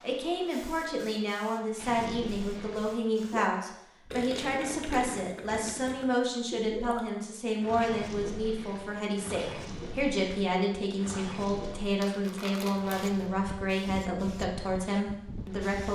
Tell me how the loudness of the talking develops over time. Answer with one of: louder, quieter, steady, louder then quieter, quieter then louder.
steady.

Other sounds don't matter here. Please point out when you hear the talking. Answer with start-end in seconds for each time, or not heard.
0.0-15.9.